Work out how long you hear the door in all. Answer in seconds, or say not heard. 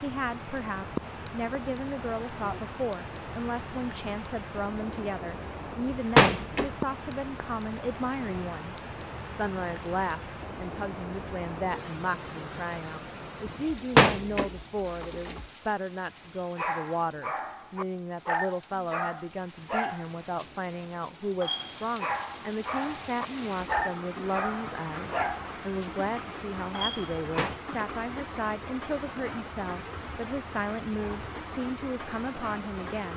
3 s.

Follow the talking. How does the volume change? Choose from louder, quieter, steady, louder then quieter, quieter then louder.
steady.